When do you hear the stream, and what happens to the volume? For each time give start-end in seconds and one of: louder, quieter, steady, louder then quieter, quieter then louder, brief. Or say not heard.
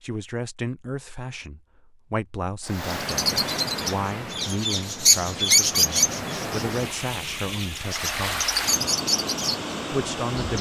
2.6-10.5 quieter then louder.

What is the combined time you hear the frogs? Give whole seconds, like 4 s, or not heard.
not heard.